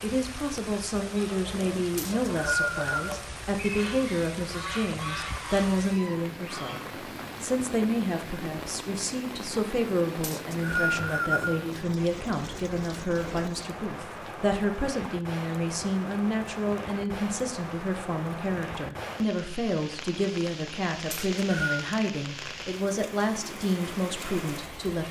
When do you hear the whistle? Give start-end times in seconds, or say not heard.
1.9-3.1, 10.2-11.6, 21.1-21.9.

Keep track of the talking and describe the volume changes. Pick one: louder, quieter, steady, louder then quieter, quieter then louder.
steady.